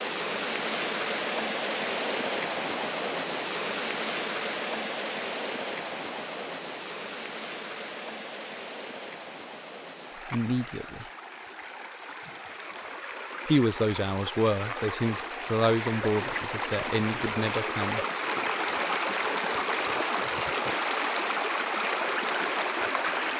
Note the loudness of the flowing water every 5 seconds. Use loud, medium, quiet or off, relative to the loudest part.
loud, medium, medium, loud, loud.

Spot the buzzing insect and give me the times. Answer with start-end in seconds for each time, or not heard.
not heard.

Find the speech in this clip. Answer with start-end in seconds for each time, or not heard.
10.3-11.1, 13.4-18.0.